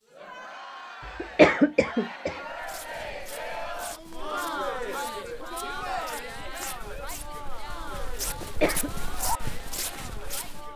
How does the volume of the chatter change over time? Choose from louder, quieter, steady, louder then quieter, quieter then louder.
louder then quieter.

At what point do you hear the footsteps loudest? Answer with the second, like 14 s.
9 s.